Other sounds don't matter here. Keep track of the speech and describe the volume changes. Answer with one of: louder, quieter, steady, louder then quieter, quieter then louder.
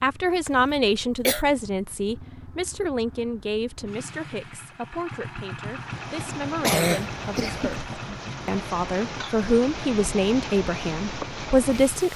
quieter then louder.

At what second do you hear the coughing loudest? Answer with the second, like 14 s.
7 s.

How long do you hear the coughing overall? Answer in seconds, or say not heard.
2 s.